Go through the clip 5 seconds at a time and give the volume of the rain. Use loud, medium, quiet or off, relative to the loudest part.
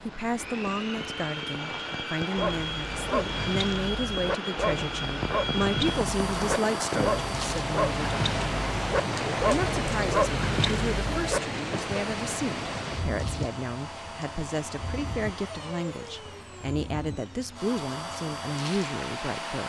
medium, loud, loud, medium.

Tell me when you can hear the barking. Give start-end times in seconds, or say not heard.
2.4-11.4.